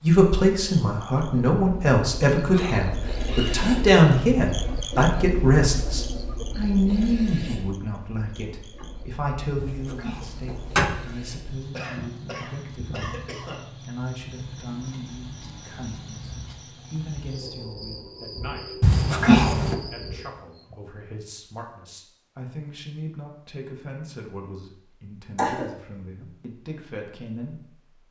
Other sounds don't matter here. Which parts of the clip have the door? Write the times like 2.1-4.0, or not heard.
9.6-10.9, 18.8-19.8.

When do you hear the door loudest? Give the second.
19 s.